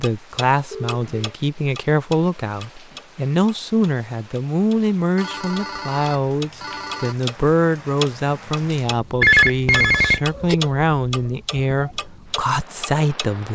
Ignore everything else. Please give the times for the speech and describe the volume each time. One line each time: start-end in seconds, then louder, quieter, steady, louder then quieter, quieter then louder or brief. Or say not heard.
0.0-13.5 steady.